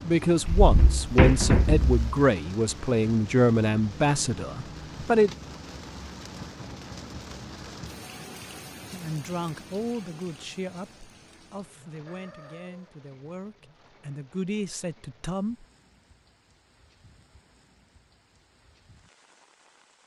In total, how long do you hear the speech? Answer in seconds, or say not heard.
12 s.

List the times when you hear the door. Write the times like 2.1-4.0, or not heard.
0.5-2.0.